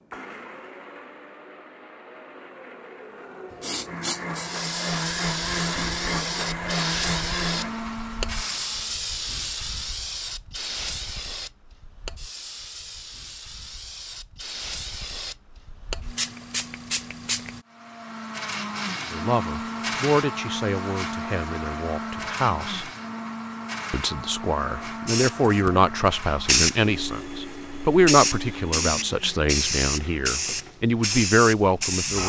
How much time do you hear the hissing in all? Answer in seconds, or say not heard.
21 s.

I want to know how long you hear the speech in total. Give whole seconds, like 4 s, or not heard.
12 s.